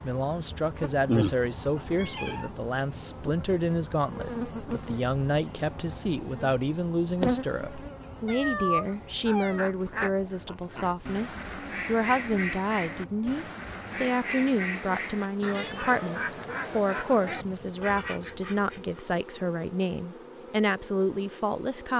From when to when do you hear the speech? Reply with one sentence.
You can hear the speech from 0.0 to 21.9 s.